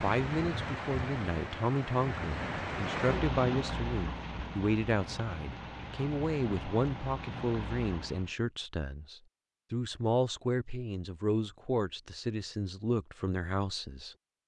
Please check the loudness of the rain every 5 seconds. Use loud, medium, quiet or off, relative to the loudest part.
loud, medium, off.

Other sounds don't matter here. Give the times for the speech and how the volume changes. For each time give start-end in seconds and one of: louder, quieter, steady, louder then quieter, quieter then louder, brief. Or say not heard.
0.0-14.2 steady.